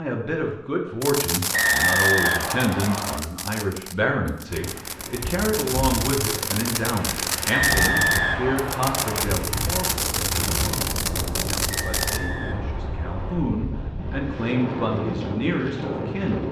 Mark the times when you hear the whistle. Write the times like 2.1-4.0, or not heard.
1.5-3.2, 7.5-9.2, 11.7-13.4.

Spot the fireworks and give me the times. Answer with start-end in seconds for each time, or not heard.
1.0-12.2.